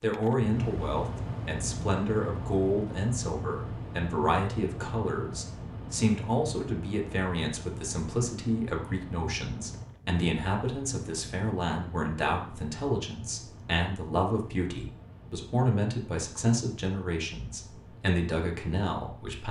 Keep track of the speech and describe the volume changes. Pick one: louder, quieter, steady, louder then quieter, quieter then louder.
steady.